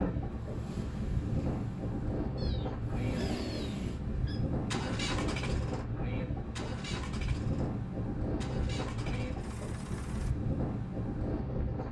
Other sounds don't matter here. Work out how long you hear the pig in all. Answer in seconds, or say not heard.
not heard.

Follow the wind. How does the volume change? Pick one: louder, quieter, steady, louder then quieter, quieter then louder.
steady.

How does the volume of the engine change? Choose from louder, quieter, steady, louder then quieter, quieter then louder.
louder then quieter.